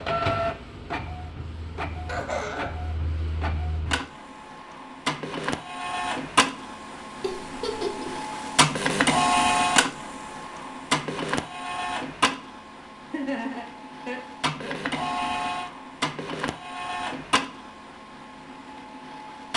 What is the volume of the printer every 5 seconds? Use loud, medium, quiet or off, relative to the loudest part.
medium, loud, medium, medium.